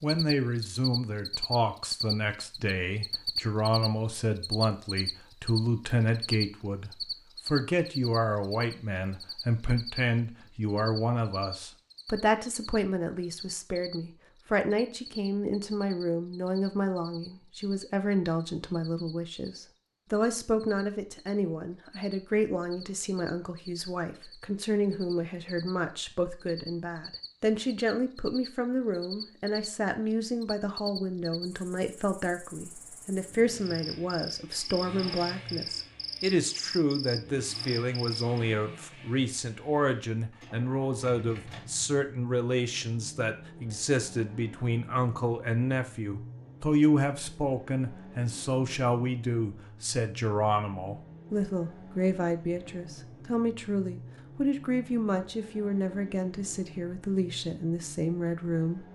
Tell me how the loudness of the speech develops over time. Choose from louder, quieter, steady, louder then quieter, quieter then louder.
steady.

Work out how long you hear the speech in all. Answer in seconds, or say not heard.
59 s.